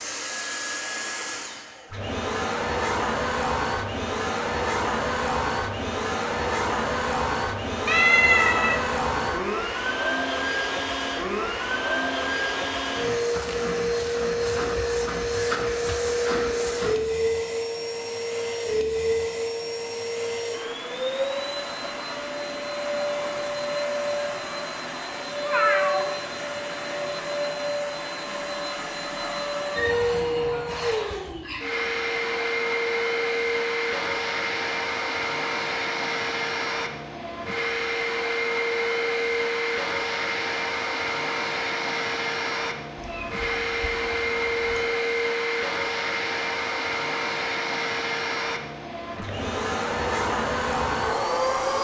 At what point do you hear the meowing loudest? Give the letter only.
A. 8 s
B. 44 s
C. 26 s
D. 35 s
A.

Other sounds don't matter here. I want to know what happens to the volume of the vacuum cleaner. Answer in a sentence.
The loudness of the vacuum cleaner stays about the same.